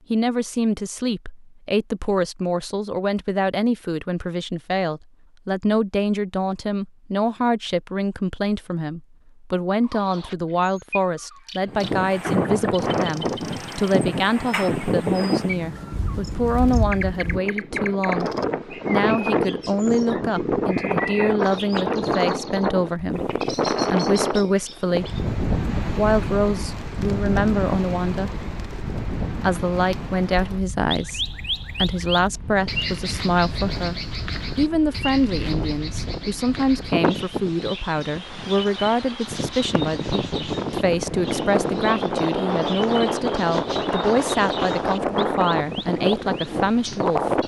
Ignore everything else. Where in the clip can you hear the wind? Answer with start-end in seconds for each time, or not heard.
11.7-47.4.